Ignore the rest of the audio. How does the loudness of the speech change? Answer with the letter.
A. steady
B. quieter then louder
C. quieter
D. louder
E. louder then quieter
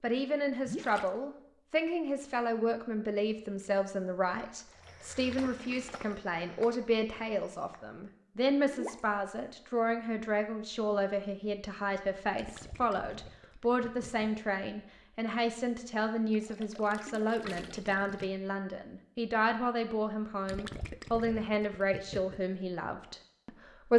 A.